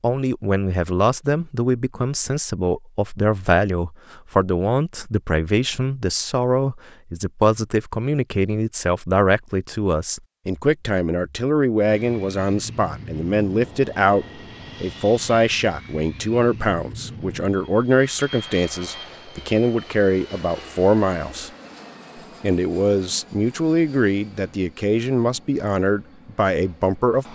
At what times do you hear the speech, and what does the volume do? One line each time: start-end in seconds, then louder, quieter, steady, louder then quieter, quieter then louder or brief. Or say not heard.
0.0-21.5 steady
22.4-27.3 steady.